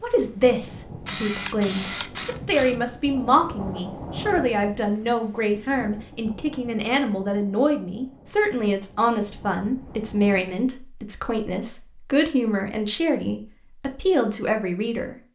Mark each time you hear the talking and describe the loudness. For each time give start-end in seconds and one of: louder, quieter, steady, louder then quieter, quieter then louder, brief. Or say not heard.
0.0-15.2 steady.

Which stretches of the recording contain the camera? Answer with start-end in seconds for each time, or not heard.
1.0-2.9.